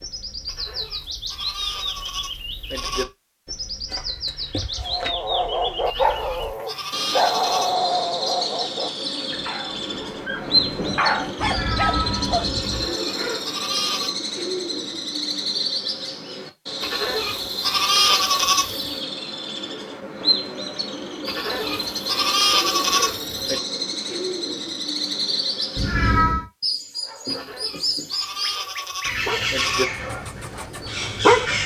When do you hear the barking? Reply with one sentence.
You can hear the barking from 4.8 to 12.4 s and from 26.9 to 31.6 s.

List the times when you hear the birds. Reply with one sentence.
You can hear the birds from 0.0 to 31.6 s.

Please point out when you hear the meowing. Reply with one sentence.
The meowing can be heard from 3.9 to 5.1 s, from 11.4 to 12.9 s and from 25.8 to 26.4 s.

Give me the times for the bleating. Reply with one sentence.
The bleating can be heard from 0.5 to 3.0 s, from 5.8 to 7.8 s, from 12.6 to 14.2 s, from 16.8 to 18.9 s, from 21.2 to 23.6 s and from 27.3 to 29.9 s.